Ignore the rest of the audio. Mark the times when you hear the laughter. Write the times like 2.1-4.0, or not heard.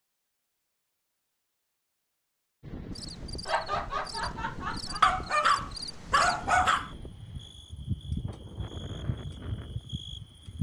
3.5-5.2.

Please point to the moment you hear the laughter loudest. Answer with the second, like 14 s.
4 s.